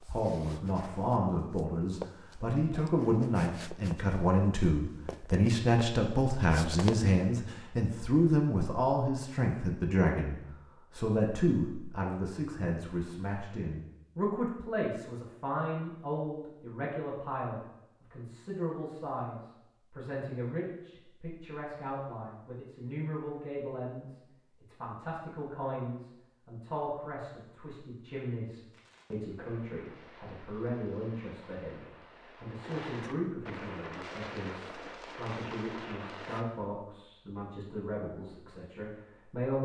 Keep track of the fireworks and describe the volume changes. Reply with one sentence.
The volume of the fireworks goes up.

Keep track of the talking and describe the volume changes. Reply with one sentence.
The loudness of the talking goes down.